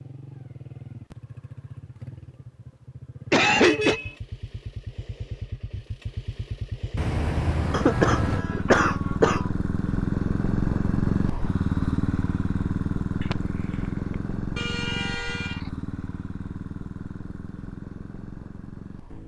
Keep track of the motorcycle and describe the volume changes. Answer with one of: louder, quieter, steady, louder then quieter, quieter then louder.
louder then quieter.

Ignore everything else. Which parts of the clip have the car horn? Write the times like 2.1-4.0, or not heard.
3.5-4.2, 7.0-8.4, 14.6-15.7.